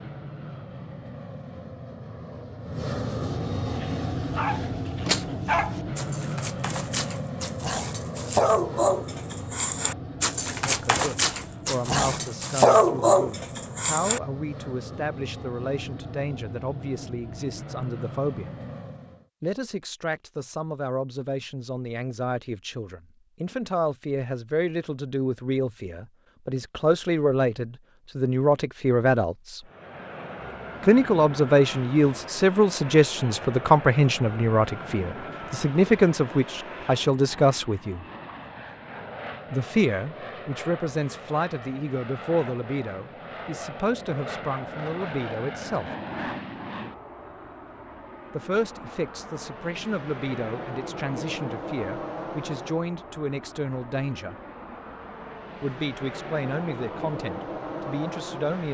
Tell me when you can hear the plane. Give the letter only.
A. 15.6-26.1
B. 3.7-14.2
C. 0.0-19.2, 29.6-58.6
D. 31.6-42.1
C.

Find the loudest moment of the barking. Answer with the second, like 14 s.
13 s.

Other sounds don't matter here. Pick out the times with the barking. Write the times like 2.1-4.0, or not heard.
3.7-14.2.